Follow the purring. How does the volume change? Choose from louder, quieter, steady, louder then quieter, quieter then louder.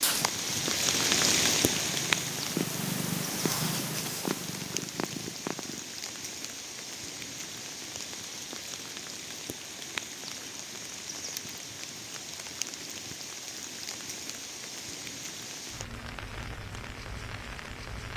louder then quieter.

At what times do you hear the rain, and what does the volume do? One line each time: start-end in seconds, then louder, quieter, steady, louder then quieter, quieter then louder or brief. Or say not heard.
0.0-18.1 quieter.